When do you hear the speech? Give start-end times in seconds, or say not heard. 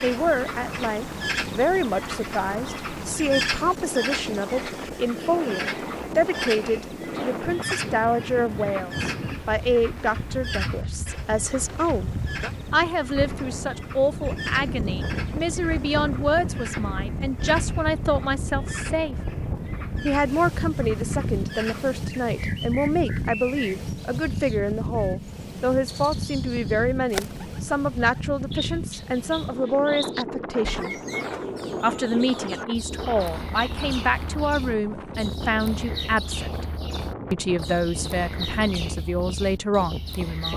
0.0-12.1, 12.7-19.1, 20.1-30.9, 31.8-36.6, 37.3-40.5.